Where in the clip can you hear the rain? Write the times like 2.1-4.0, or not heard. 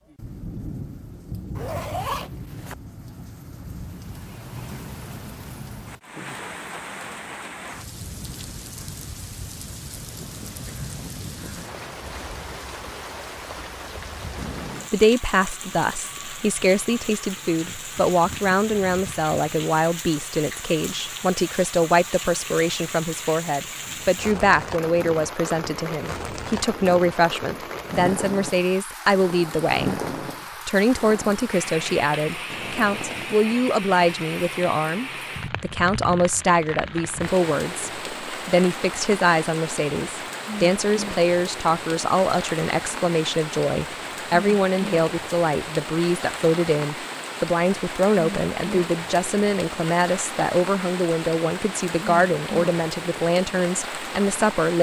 0.0-54.7.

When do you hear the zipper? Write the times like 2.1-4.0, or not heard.
1.6-2.8, 32.5-33.4.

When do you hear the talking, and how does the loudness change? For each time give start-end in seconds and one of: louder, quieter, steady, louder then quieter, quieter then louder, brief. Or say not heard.
14.9-30.0 steady
30.6-54.7 steady.